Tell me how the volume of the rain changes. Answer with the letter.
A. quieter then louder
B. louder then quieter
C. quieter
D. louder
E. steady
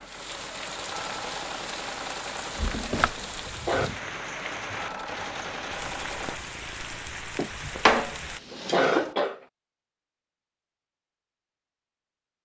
E.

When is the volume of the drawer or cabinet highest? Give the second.
8 s.